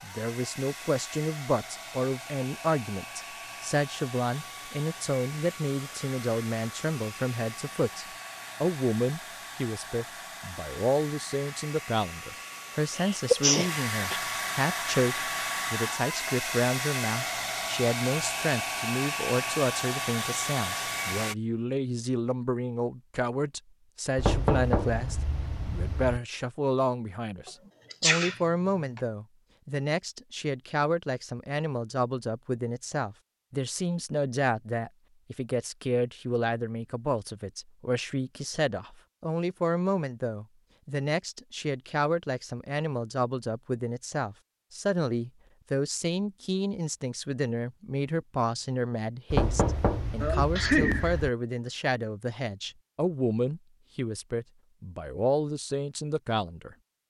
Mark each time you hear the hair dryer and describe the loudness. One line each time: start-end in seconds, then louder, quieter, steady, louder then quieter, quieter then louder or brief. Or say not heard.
0.0-21.4 louder.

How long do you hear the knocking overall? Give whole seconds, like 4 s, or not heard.
4 s.